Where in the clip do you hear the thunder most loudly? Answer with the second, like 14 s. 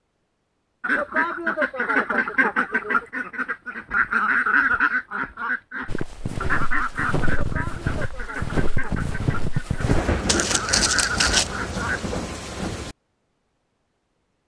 10 s.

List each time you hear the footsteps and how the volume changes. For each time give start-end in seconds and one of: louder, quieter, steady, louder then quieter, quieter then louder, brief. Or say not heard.
5.8-11.5 louder.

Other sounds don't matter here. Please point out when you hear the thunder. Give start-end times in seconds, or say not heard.
9.8-12.9.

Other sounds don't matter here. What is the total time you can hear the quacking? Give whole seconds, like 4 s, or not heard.
11 s.